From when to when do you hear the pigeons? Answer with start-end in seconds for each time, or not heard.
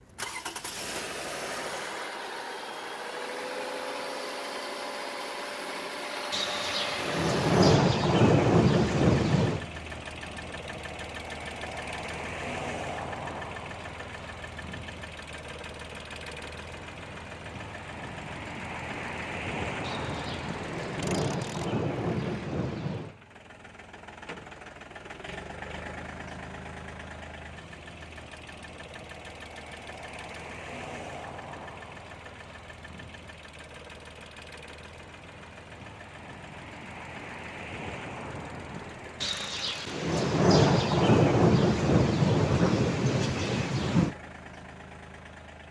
not heard.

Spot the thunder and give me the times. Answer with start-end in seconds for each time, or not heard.
6.3-9.7, 19.8-23.1, 39.2-44.1.